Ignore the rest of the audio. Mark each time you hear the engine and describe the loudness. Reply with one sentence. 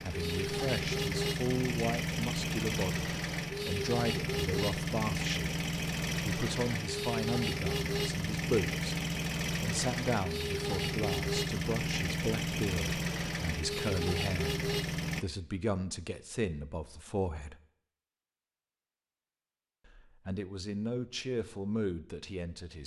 The engine can be heard from 0.0 to 15.2 s, at a steady volume.